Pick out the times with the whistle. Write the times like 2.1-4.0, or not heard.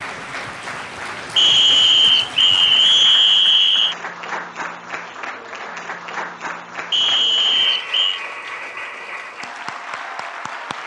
1.4-4.0, 6.9-8.2.